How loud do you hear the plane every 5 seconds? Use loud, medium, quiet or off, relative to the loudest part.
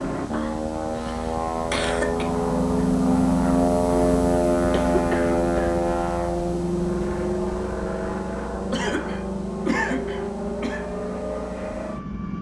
loud, loud, medium.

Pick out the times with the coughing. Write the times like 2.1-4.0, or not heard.
0.3-2.2, 4.7-5.7, 8.7-10.8.